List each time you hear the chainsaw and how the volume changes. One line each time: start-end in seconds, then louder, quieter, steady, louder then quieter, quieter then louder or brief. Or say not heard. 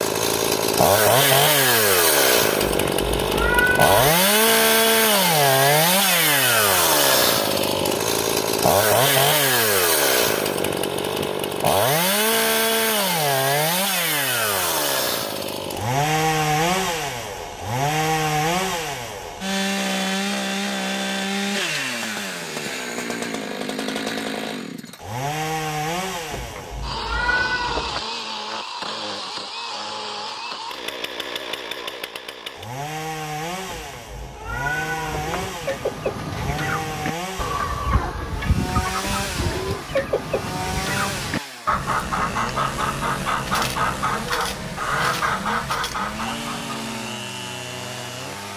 0.0-48.5 quieter.